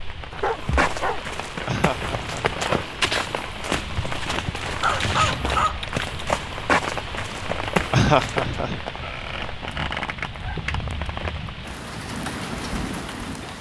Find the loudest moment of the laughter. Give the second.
8 s.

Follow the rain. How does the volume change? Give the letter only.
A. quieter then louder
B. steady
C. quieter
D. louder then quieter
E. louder
B.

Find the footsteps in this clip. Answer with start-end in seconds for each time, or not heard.
0.4-8.6.